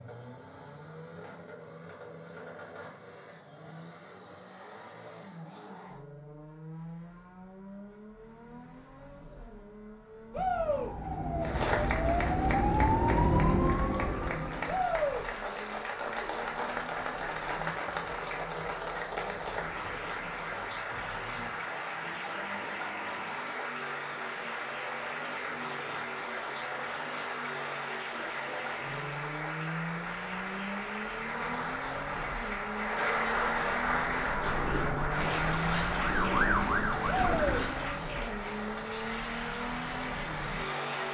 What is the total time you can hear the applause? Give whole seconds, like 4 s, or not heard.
30 s.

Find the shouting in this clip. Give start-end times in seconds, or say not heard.
10.3-10.9, 14.7-15.2, 37.0-37.6.